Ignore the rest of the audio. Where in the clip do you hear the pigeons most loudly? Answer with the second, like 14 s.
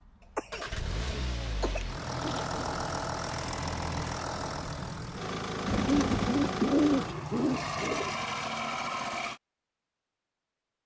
7 s.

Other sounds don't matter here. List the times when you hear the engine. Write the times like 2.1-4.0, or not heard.
0.0-9.4.